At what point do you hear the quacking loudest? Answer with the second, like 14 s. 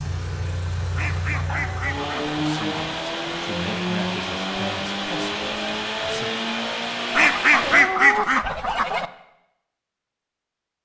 8 s.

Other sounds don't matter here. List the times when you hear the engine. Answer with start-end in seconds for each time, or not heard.
0.0-7.8.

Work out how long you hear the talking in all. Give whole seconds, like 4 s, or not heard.
4 s.